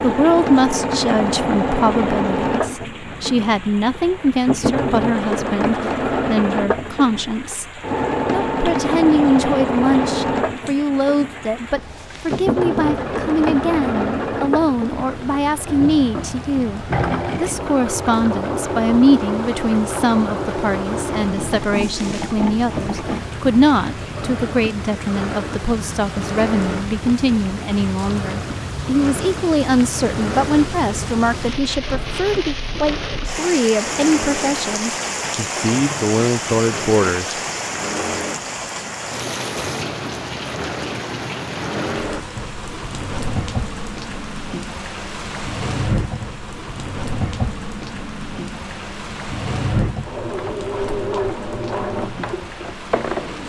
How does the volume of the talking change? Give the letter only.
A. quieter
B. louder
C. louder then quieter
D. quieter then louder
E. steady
E.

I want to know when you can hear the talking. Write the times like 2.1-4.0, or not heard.
0.0-37.4.